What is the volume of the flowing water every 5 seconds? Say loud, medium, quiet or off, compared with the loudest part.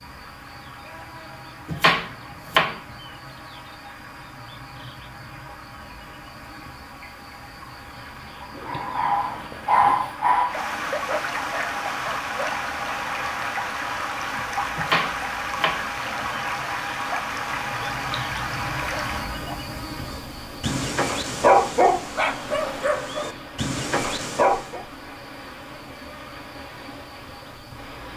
quiet, quiet, loud, loud, medium, quiet.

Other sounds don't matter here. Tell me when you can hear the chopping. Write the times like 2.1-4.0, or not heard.
1.6-2.8, 14.8-15.8.